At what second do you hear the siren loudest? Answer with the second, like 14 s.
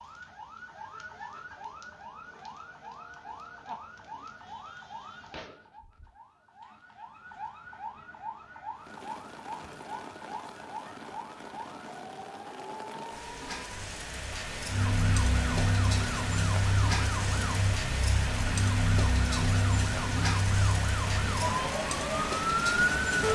23 s.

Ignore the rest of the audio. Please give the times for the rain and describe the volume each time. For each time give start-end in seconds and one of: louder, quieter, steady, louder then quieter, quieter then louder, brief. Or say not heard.
8.8-23.2 louder.